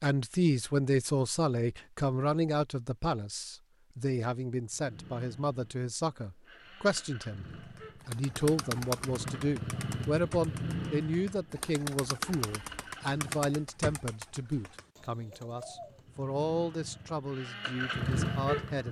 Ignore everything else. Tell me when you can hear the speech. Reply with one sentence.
You can hear the speech from 0.0 to 7.5 s and from 8.1 to 18.8 s.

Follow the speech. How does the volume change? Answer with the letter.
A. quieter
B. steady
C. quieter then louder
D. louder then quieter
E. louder
A.